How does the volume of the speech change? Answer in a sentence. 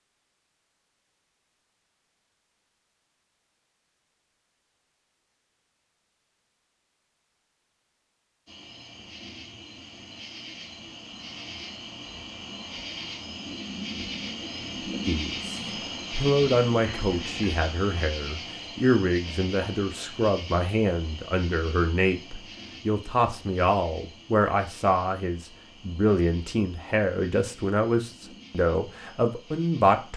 The loudness of the speech stays about the same.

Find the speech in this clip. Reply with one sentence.
You can hear the speech from 15.1 to 30.1 s.